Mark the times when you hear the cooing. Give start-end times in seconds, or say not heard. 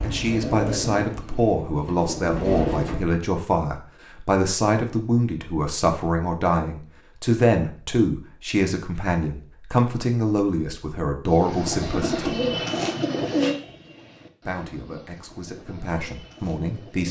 0.0-3.0, 11.2-17.0.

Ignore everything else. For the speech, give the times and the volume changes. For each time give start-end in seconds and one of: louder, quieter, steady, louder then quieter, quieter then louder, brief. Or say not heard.
0.0-12.3 steady
14.4-17.0 brief.